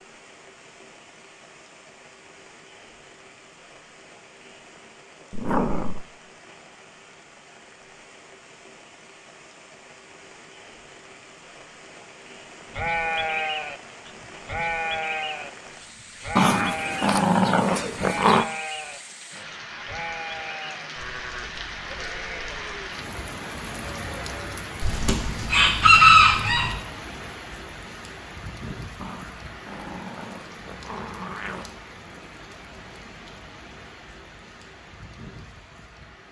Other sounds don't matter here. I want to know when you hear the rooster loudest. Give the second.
26 s.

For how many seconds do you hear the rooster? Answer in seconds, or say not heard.
2 s.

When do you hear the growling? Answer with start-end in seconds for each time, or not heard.
5.3-6.0, 16.4-18.4, 29.0-31.7.